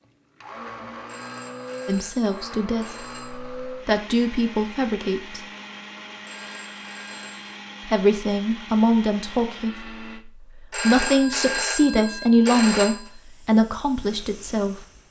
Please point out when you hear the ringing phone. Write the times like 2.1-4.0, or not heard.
1.1-3.4, 6.2-7.5, 10.7-13.1.